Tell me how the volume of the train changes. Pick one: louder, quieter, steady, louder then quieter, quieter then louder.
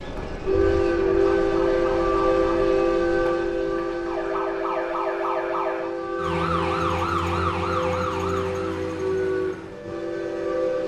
quieter.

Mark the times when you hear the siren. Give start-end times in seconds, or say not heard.
0.0-10.8.